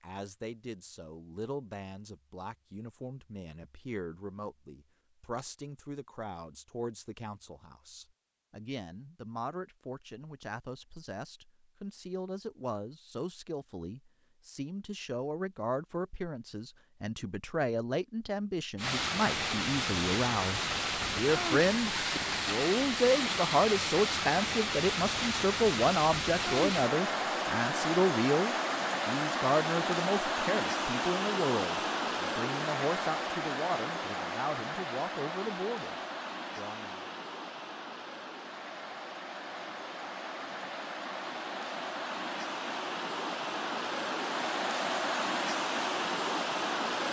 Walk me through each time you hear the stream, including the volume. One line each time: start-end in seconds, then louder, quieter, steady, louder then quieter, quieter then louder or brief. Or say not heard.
18.8-47.0 quieter then louder.